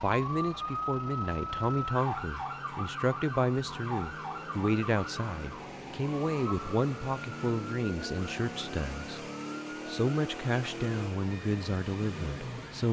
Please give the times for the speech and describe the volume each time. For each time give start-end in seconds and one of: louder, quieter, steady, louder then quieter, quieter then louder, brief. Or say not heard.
0.0-9.2 steady
9.8-12.8 brief.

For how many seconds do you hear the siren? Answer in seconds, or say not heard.
13 s.